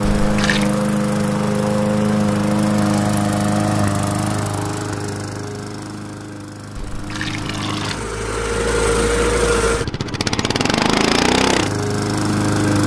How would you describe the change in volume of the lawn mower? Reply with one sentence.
The volume of the lawn mower goes down, then up.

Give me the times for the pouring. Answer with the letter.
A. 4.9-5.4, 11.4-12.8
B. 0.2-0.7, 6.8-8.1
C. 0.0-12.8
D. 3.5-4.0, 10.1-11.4
B.